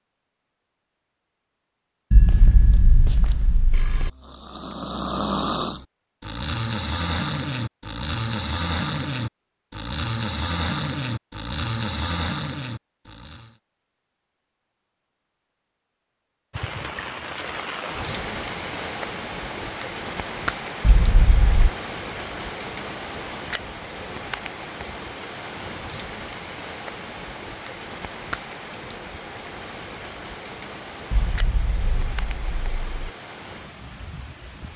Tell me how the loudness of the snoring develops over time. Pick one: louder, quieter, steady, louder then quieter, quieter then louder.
steady.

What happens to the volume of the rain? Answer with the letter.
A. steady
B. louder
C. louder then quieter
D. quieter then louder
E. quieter
E.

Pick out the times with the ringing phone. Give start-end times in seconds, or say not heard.
2.1-4.1, 20.8-21.7, 31.1-33.1.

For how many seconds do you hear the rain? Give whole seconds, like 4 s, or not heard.
18 s.